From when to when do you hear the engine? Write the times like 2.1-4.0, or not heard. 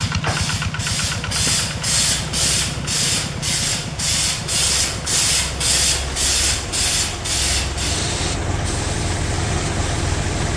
0.0-10.5.